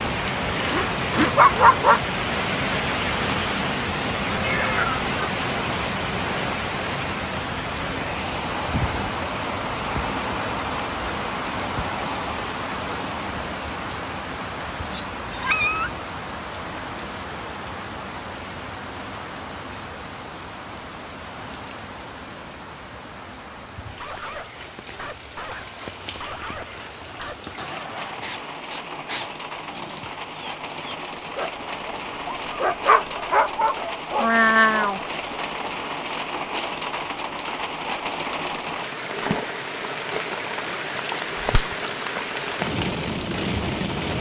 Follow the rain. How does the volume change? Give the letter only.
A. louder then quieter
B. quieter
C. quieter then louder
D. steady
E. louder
C.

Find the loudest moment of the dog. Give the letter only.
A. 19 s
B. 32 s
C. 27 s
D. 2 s
D.